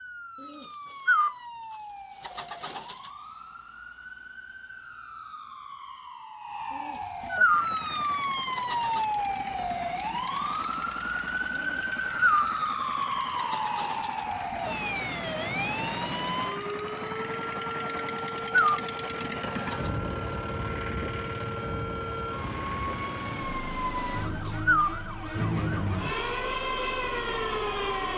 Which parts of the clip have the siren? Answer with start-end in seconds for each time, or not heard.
0.0-28.1.